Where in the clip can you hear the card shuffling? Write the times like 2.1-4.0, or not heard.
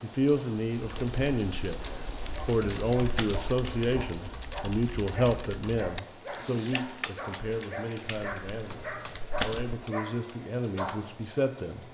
1.8-3.5, 8.0-9.8.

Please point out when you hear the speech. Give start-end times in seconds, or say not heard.
0.0-11.8.